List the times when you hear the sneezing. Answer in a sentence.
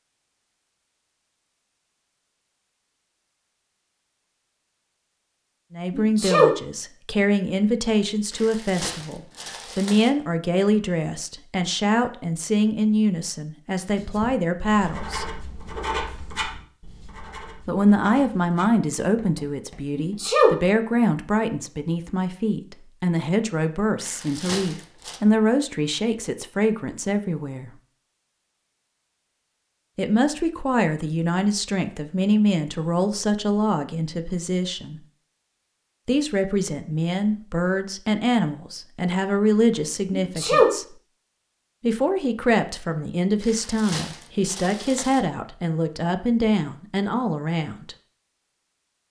The sneezing can be heard from 5.9 to 6.5 s, from 19.9 to 20.5 s and from 40.1 to 40.7 s.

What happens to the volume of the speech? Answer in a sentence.
The volume of the speech stays about the same.